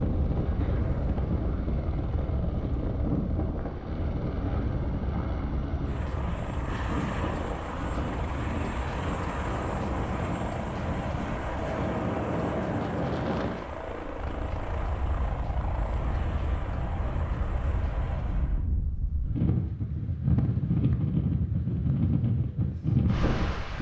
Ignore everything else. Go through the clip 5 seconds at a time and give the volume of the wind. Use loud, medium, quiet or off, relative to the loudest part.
medium, medium, medium, medium, loud.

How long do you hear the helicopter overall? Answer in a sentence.
The helicopter can be heard for 19 seconds in total.